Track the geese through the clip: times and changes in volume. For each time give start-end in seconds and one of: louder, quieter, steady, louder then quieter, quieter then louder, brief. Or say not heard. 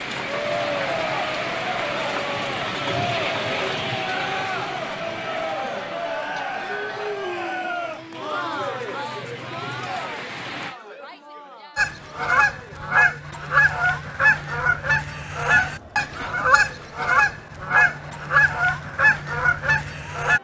11.8-20.3 steady.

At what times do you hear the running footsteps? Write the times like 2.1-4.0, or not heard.
not heard.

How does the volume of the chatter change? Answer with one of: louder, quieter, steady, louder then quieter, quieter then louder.
quieter.